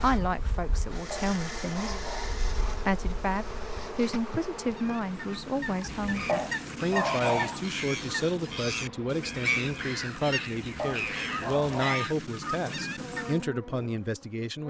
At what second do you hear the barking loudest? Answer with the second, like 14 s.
7 s.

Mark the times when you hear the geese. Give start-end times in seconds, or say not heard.
4.7-13.4.